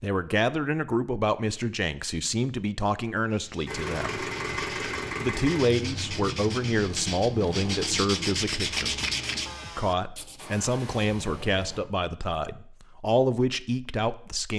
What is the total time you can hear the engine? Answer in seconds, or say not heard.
8 s.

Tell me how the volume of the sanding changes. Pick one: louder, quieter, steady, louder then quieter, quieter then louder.
louder.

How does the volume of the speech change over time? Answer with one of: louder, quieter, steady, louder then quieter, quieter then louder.
steady.